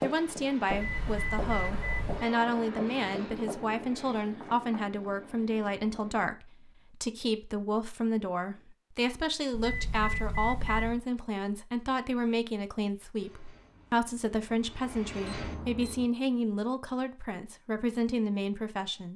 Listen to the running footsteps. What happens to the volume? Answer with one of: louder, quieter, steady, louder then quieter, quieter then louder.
quieter.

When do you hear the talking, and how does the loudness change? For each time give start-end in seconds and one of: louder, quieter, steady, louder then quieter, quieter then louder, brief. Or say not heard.
0.0-19.1 steady.